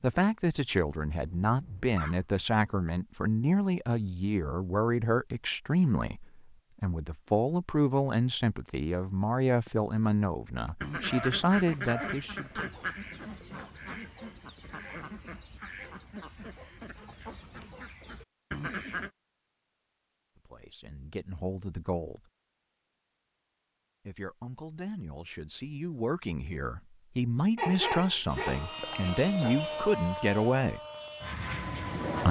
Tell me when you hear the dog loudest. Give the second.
28 s.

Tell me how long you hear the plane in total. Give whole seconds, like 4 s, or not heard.
4 s.